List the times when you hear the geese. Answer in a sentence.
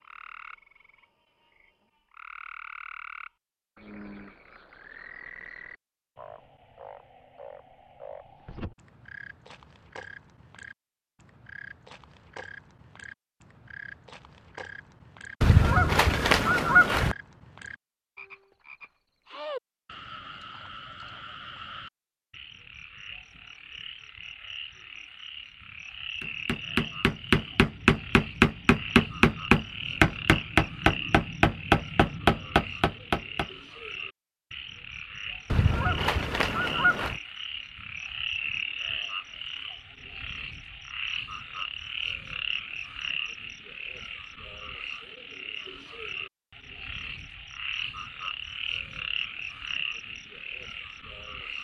The geese can be heard from 15.4 to 17.1 s and from 35.5 to 37.2 s.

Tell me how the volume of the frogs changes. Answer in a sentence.
The loudness of the frogs goes up.